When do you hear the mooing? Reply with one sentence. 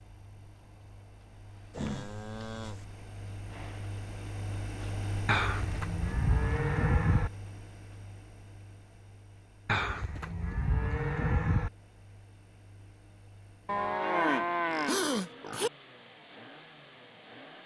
You can hear the mooing from 1.7 to 2.9 s, from 5.2 to 7.3 s, from 9.7 to 11.7 s and from 13.7 to 15.7 s.